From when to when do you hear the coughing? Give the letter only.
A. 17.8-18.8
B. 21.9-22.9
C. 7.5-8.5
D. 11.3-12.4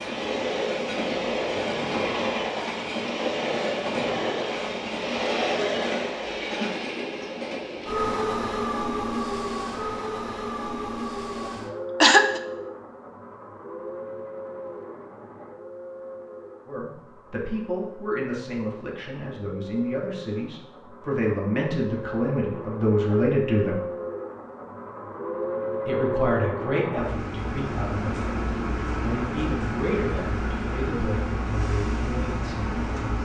D.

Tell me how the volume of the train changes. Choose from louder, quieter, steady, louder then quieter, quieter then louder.
quieter then louder.